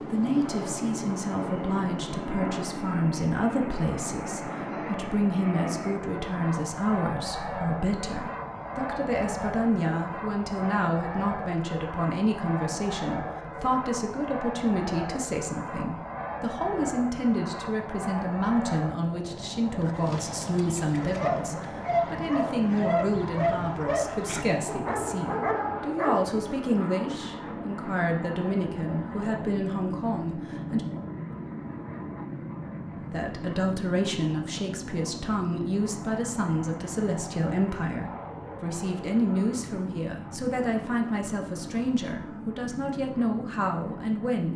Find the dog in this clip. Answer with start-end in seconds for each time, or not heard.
19.9-26.3.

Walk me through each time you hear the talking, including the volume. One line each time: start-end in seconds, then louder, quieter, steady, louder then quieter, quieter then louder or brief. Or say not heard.
0.1-30.8 steady
33.1-44.5 steady.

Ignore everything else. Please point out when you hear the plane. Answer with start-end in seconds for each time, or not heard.
0.0-44.5.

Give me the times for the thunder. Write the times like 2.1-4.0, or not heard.
not heard.